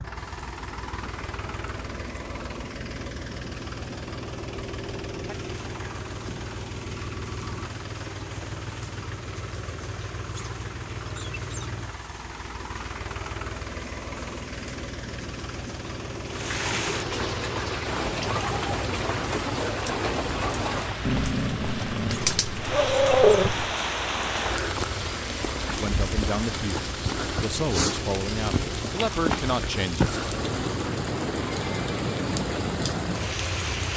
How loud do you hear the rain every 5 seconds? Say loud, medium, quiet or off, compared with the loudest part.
quiet, quiet, quiet, loud, loud, loud, loud.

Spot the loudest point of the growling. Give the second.
23 s.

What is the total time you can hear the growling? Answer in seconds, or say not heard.
3 s.